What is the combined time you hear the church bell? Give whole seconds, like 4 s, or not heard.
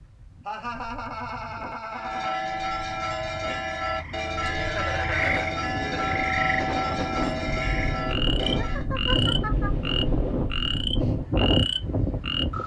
7 s.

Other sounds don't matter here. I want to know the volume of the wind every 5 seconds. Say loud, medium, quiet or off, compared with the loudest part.
quiet, loud, loud.